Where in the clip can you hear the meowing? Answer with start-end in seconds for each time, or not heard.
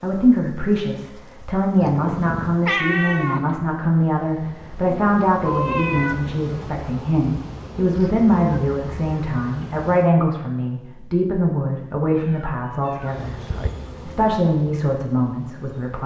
1.8-3.5, 5.5-6.2, 12.1-13.7.